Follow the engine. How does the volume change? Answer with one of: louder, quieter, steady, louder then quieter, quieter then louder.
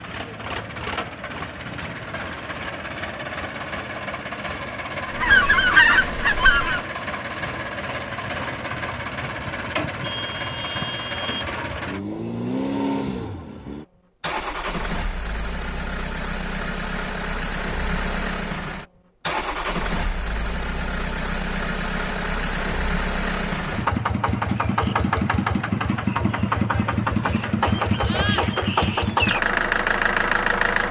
louder.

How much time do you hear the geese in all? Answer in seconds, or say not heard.
2 s.